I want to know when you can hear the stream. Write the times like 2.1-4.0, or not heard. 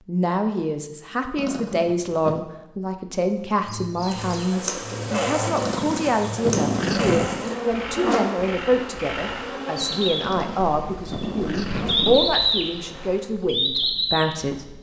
not heard.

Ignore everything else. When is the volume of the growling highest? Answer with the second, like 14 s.
7 s.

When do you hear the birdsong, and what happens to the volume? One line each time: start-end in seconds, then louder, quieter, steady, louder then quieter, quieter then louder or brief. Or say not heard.
3.6-14.7 louder.